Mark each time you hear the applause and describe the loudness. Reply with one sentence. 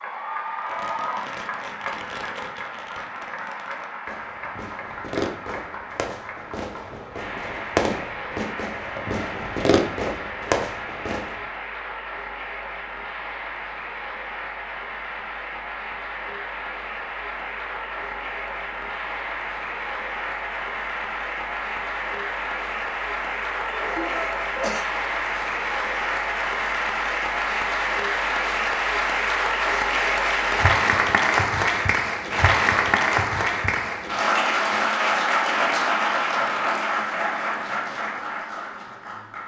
The applause can be heard from 0.0 to 39.4 s, getting louder.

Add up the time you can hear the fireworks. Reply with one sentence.
You can hear the fireworks for 11 seconds altogether.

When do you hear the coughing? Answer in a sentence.
You can hear the coughing from 23.6 to 24.9 s.